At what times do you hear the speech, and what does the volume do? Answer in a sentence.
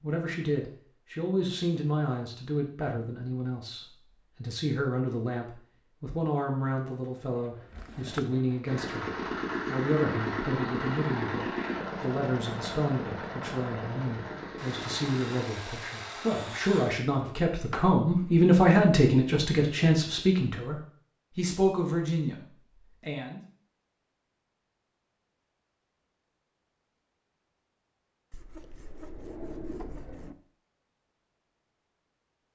The speech can be heard from 0.0 to 23.4 s, getting louder.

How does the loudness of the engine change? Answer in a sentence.
The volume of the engine goes down.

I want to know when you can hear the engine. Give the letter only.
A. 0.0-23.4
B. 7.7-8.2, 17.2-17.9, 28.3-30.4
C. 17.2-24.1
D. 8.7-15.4
D.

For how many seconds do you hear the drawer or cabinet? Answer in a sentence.
You can hear the drawer or cabinet for 3 seconds altogether.